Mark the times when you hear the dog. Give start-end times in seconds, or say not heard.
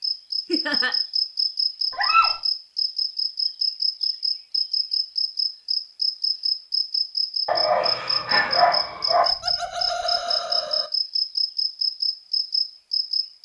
1.9-2.4, 7.5-9.2.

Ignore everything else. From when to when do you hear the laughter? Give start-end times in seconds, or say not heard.
0.5-0.9, 9.2-10.9.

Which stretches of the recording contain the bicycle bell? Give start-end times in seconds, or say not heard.
not heard.